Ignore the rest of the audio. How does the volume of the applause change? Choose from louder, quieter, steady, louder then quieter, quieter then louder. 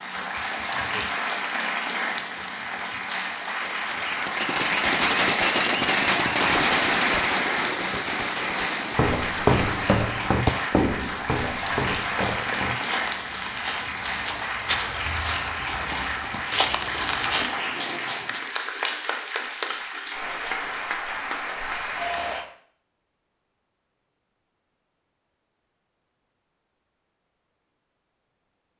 steady.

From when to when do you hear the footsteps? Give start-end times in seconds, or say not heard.
8.9-17.6.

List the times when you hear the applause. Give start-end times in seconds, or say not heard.
0.0-22.4.